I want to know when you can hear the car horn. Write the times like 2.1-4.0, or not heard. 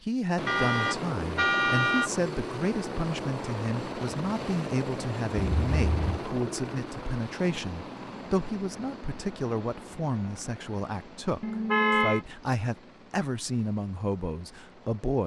0.5-2.1, 5.3-6.2, 11.4-12.2.